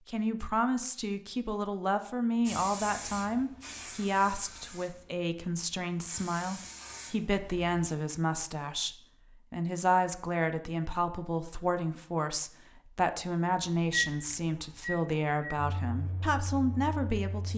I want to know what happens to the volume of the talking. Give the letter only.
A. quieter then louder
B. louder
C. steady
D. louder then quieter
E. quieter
C.